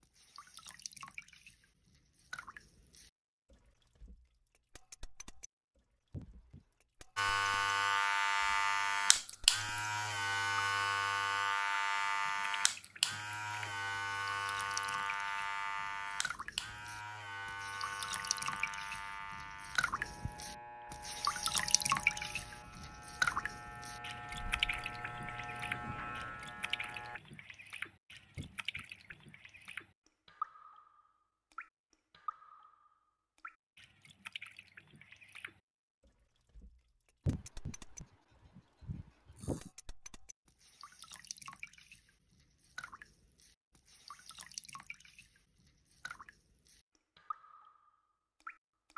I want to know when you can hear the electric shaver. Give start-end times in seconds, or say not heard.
7.2-27.2.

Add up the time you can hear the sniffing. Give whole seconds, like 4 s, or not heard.
4 s.